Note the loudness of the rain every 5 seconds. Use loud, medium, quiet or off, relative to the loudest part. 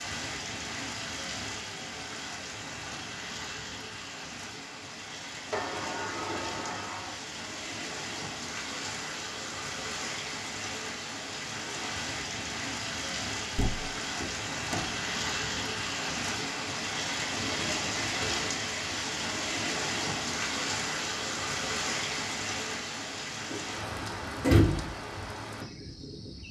medium, medium, loud, loud, loud, medium.